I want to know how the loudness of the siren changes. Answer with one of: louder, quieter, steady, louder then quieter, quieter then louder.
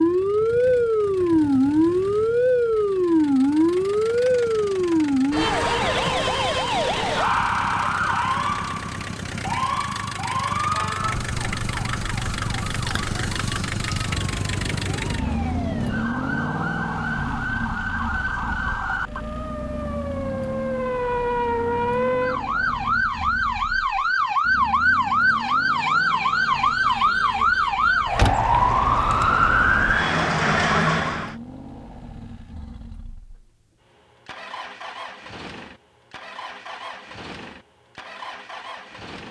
quieter then louder.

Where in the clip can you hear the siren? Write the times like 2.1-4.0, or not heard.
0.0-31.4.